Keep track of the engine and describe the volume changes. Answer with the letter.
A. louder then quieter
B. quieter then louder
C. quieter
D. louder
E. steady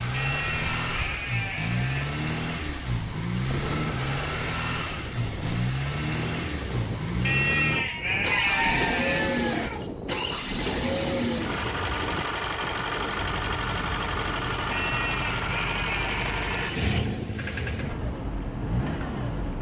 E.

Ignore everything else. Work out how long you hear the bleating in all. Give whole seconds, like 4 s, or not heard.
6 s.